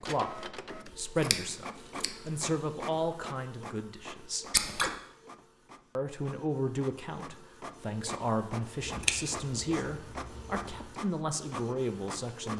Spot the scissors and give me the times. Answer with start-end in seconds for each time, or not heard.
1.1-2.1, 4.5-4.9, 8.8-10.8.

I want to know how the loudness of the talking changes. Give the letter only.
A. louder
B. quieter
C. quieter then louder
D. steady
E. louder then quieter
D.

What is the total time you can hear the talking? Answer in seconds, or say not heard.
11 s.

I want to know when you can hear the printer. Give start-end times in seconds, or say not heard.
0.0-12.5.